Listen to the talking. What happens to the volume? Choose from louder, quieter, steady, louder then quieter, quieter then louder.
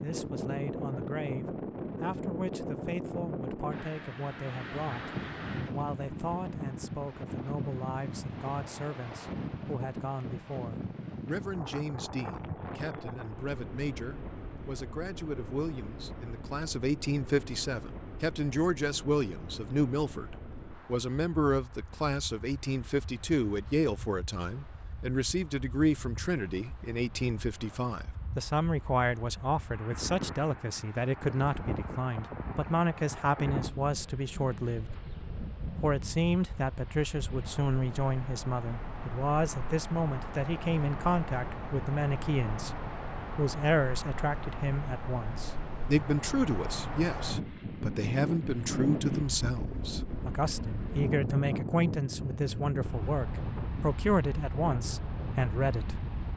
louder.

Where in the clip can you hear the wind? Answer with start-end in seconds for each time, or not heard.
0.0-56.3.